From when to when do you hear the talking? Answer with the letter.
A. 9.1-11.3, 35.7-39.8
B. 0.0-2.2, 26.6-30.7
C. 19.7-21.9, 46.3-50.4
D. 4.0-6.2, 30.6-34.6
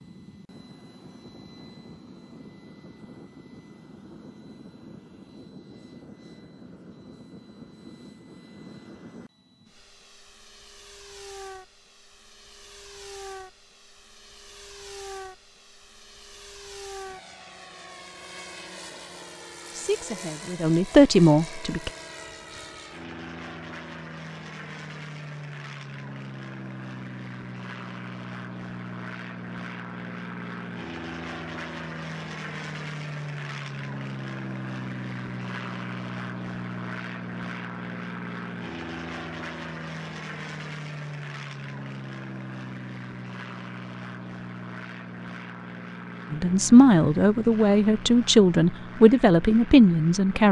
C.